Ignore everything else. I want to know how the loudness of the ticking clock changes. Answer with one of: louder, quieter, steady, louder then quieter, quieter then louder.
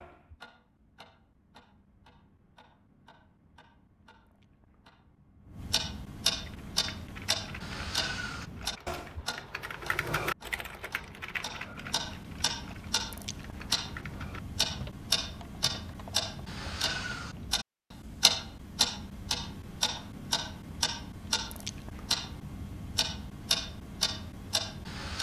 louder.